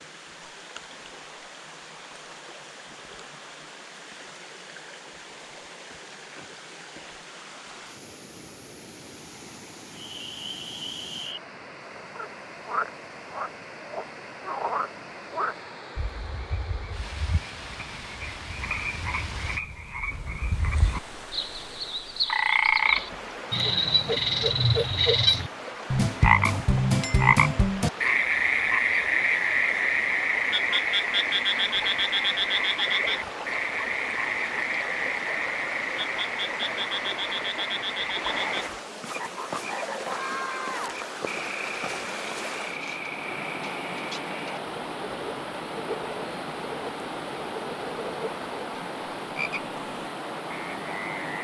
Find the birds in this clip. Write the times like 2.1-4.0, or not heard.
not heard.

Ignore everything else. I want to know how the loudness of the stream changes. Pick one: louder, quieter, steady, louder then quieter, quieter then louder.
louder.